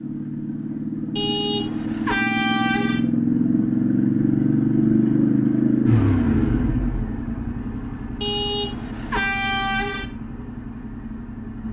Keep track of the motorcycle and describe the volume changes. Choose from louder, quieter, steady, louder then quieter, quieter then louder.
louder then quieter.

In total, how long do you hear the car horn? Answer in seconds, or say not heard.
4 s.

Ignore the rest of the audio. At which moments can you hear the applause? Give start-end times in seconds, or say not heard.
not heard.